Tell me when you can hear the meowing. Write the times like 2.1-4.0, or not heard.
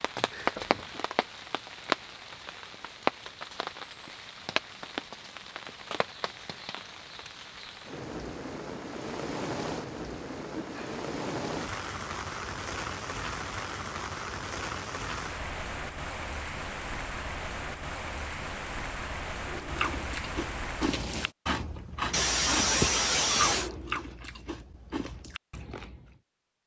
not heard.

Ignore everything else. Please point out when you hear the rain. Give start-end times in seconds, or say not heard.
0.0-21.4.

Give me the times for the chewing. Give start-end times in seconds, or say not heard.
19.4-26.2.